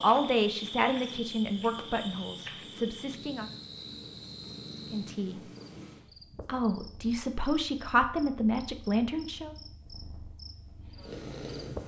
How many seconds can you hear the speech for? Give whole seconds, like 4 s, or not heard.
7 s.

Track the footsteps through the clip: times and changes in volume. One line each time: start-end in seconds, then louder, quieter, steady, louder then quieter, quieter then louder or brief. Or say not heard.
not heard.